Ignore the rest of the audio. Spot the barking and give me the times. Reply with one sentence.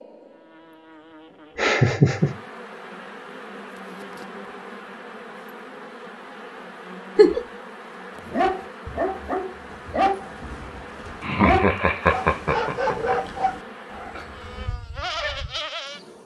You can hear the barking from 8.2 to 15.5 s.